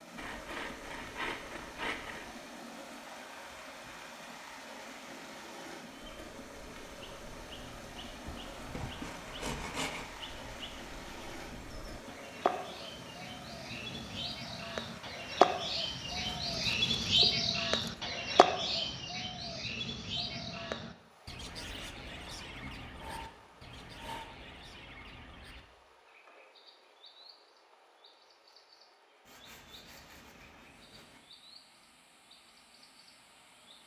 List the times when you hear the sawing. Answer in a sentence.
You can hear the sawing from 0.1 to 2.3 s, from 8.2 to 10.1 s, from 16.1 to 18.1 s, from 22.2 to 24.2 s and from 29.2 to 31.2 s.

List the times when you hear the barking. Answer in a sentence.
The barking can't be heard in this clip.